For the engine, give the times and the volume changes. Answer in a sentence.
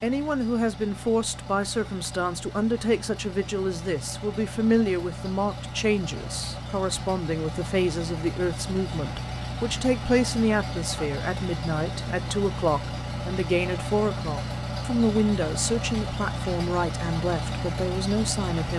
You can hear the engine from 0.0 to 18.7 s, getting louder.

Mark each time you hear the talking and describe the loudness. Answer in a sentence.
You can hear the talking from 0.0 to 18.7 s, at a steady volume.